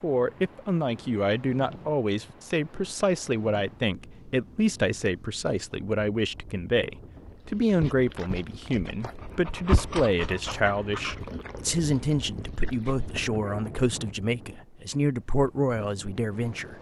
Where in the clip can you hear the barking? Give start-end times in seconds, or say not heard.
7.3-13.8.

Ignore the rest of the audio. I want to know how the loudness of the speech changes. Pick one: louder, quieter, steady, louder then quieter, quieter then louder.
steady.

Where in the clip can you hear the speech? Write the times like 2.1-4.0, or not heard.
0.0-16.7.